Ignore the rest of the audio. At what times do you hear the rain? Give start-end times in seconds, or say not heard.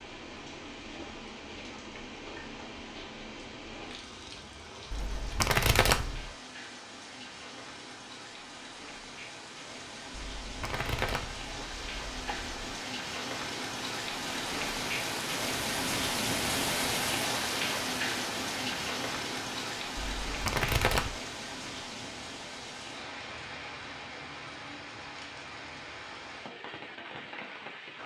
0.0-28.0.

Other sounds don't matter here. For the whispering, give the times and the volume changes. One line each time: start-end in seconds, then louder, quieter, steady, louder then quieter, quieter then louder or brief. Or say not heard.
not heard.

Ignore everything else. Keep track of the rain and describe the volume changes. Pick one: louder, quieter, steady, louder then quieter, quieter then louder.
louder then quieter.